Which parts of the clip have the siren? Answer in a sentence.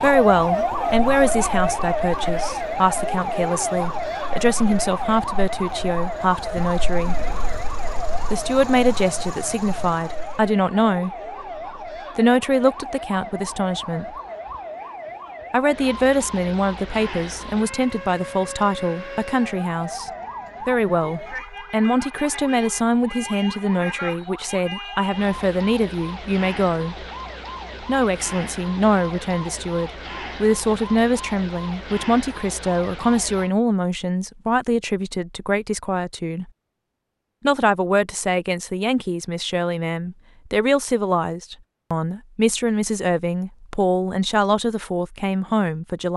The siren can be heard from 0.0 to 33.5 s.